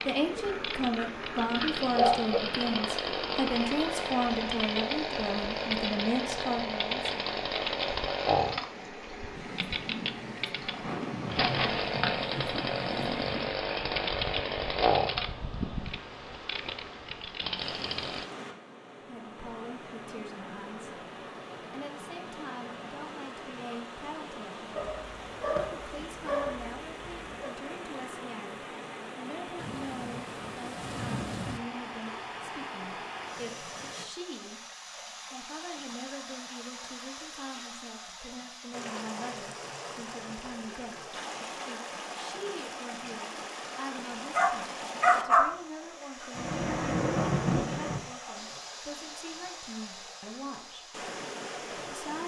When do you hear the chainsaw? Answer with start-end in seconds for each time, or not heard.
0.0-18.2.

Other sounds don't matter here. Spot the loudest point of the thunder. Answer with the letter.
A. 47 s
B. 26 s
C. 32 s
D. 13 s
A.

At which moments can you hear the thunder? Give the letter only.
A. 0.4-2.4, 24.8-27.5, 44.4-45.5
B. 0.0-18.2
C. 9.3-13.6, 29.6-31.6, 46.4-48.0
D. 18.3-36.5
C.